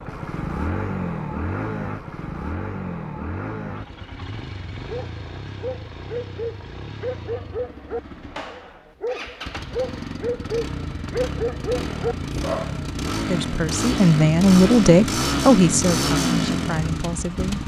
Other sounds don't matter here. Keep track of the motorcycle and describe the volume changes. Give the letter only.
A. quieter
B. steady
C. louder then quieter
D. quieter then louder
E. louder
D.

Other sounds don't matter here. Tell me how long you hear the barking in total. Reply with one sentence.
The barking can be heard for 8 seconds in total.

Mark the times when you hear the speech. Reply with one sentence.
The speech can be heard from 13.2 to 17.6 s.